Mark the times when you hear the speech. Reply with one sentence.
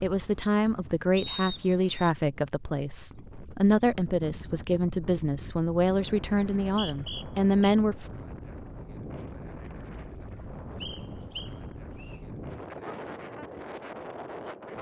You can hear the speech from 0.0 to 8.1 s.